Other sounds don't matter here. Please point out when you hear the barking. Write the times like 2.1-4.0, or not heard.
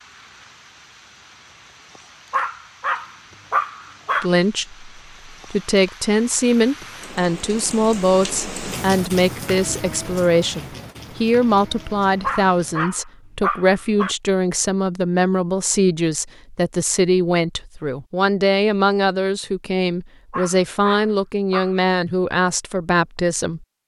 2.3-4.3, 12.2-14.2, 20.3-21.9.